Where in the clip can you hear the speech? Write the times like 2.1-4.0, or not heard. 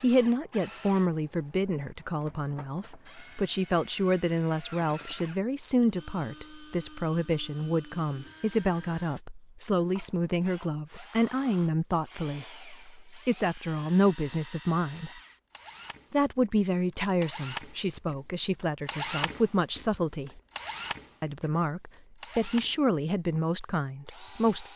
0.0-15.1, 16.1-20.4, 21.2-24.7.